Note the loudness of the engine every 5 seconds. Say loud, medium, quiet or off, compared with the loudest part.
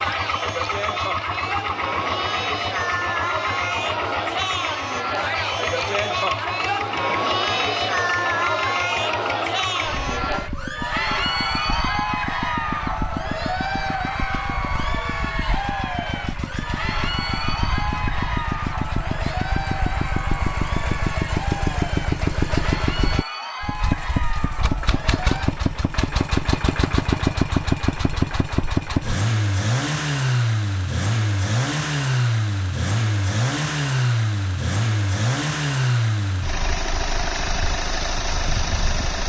medium, medium, medium, medium, loud, loud, loud, loud.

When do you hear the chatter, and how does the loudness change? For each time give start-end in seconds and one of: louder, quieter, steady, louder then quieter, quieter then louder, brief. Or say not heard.
0.0-25.5 quieter.